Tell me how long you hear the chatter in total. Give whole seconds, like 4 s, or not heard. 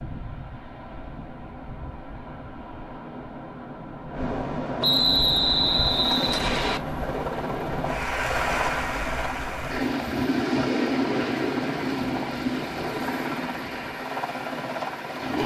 not heard.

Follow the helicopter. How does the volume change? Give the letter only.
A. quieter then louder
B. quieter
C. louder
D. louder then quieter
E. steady
E.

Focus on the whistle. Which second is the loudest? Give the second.
5 s.